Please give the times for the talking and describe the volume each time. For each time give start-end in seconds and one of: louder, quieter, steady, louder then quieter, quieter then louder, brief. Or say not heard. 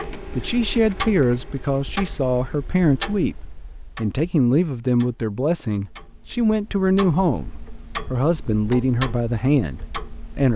0.3-10.5 steady.